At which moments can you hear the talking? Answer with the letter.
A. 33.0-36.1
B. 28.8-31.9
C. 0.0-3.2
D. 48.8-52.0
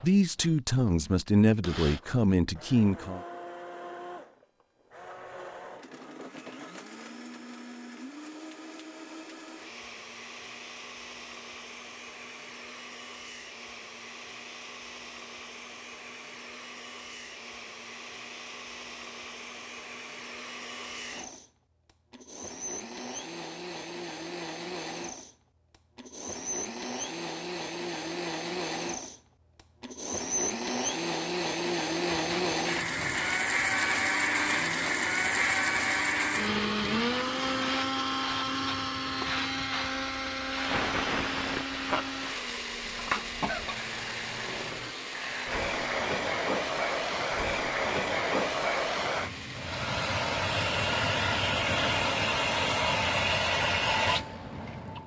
C.